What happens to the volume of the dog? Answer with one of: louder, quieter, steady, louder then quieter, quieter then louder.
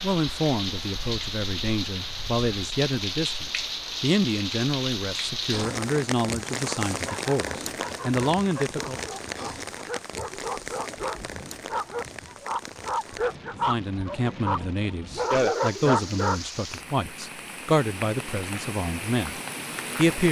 louder.